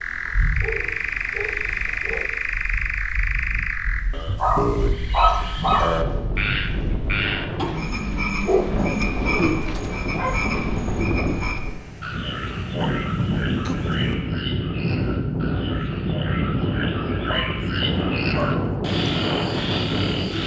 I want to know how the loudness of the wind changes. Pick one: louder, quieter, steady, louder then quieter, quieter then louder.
louder.